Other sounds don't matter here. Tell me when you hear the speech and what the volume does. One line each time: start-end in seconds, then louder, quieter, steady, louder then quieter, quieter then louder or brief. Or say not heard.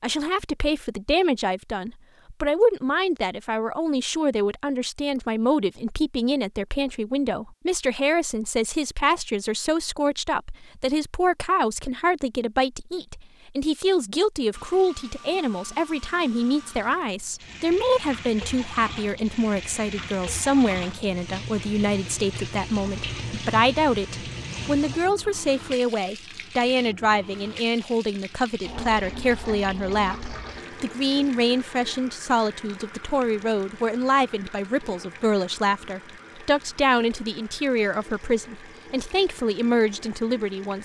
0.0-40.8 steady.